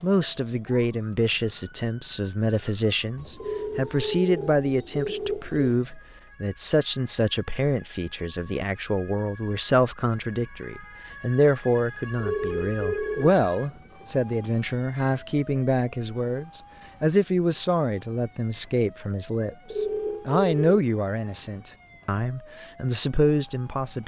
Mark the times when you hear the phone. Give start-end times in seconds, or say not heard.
3.4-5.5, 12.2-13.4, 19.7-20.8.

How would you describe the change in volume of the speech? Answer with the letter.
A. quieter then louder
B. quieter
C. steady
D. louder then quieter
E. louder
C.